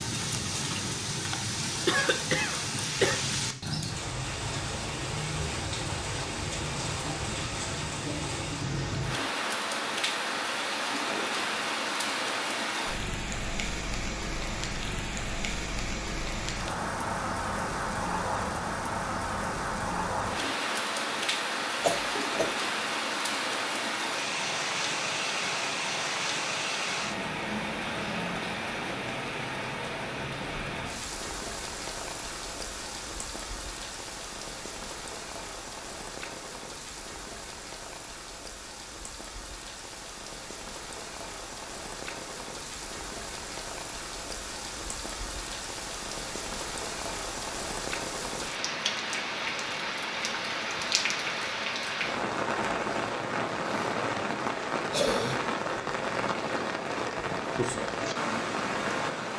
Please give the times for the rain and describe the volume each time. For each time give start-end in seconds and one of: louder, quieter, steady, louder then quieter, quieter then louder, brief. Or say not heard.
0.0-59.3 quieter then louder.